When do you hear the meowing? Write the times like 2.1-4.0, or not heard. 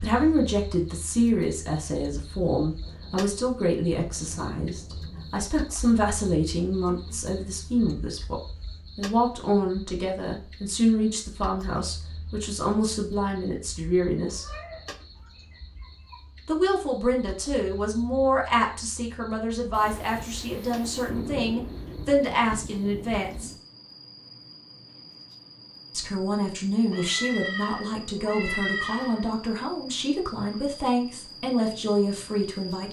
6.7-8.2, 14.2-16.2, 26.9-29.4.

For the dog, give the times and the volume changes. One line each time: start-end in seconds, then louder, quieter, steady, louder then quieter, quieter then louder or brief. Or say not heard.
not heard.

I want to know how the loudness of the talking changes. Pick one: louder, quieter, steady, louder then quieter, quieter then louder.
steady.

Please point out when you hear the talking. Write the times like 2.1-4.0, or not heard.
0.0-14.4, 16.4-23.5, 25.9-32.8.